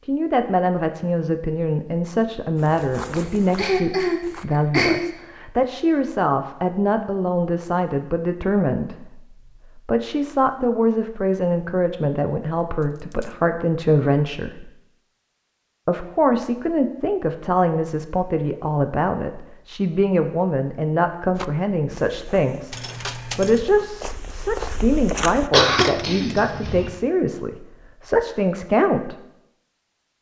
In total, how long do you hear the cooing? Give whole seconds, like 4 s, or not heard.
not heard.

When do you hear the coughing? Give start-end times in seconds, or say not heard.
3.1-5.0, 25.5-26.9.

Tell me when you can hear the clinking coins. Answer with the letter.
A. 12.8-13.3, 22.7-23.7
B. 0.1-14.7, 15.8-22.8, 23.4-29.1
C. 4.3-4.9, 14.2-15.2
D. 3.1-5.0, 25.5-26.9
A.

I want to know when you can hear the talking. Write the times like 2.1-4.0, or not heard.
0.1-14.7, 15.8-22.8, 23.4-29.1.